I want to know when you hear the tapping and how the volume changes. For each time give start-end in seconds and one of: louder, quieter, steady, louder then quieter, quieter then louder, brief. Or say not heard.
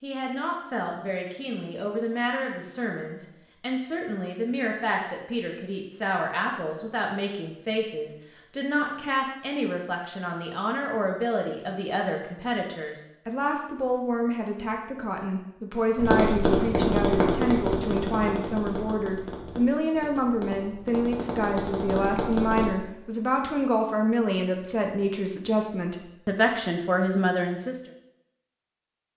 15.9-22.7 quieter then louder.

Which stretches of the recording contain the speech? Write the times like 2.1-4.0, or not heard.
0.0-27.9.